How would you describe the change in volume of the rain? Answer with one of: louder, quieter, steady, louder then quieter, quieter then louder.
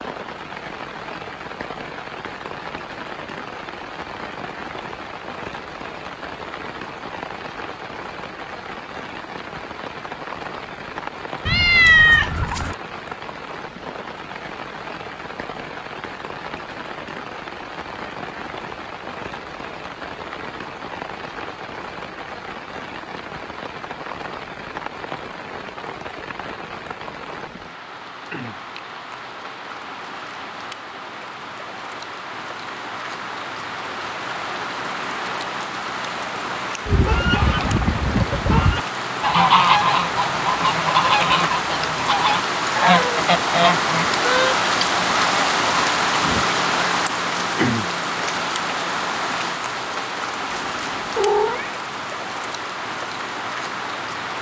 louder.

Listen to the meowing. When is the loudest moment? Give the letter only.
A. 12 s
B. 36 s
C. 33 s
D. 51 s
A.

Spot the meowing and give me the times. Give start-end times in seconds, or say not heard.
11.4-12.8, 50.5-51.7.